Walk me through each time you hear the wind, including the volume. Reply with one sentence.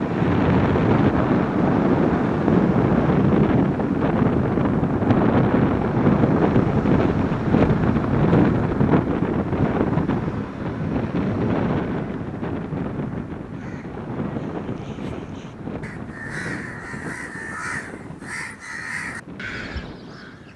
The wind can be heard from 0.0 to 20.5 s, getting quieter.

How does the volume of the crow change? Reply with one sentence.
The loudness of the crow goes up.